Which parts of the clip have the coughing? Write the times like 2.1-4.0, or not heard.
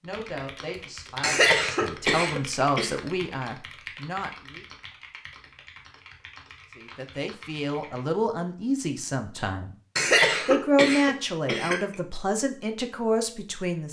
1.2-3.0, 9.9-11.8.